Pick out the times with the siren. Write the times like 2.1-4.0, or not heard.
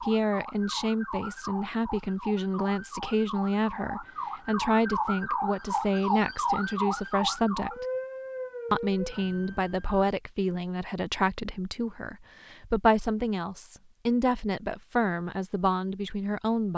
0.0-10.1.